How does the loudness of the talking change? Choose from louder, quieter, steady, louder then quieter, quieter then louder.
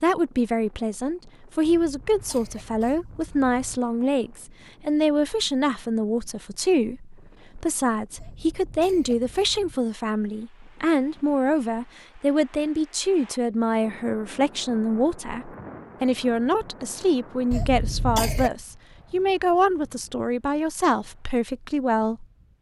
steady.